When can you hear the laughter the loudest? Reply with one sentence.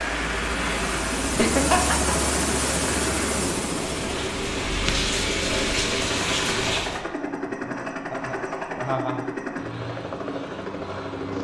The loudest moment of the laughter is at 2 seconds.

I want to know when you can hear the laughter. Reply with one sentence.
The laughter can be heard from 1.2 to 2.1 s and from 7.2 to 9.2 s.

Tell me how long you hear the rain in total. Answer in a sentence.
You can hear the rain for 7 seconds altogether.